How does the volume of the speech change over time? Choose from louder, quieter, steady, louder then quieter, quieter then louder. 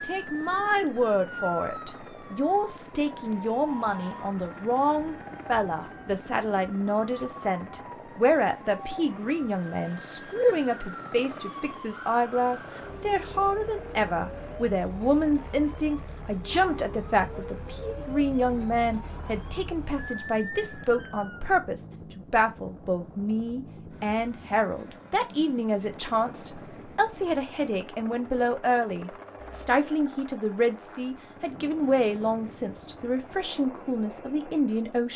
steady.